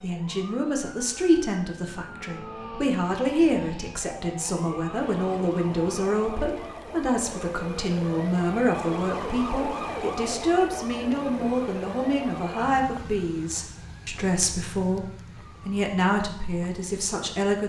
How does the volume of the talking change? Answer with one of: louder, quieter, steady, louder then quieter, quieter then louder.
steady.